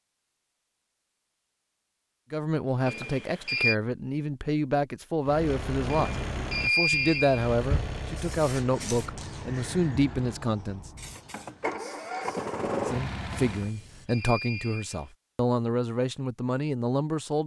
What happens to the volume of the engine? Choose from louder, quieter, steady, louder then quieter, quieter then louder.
quieter then louder.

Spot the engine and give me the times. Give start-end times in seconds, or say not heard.
5.2-13.7.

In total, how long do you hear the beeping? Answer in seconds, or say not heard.
4 s.